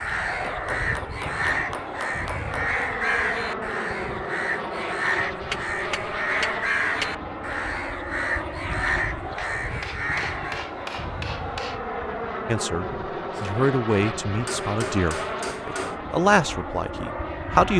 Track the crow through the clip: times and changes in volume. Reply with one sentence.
The crow can be heard from 0.0 to 10.7 s, at a steady volume.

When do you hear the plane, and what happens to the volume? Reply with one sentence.
You can hear the plane from 0.0 to 17.7 s, at a steady volume.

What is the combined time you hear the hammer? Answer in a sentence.
You can hear the hammer for 8 seconds altogether.